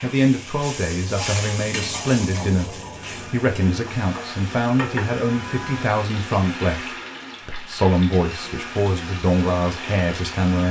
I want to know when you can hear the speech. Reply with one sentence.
The speech can be heard from 0.0 to 10.6 s.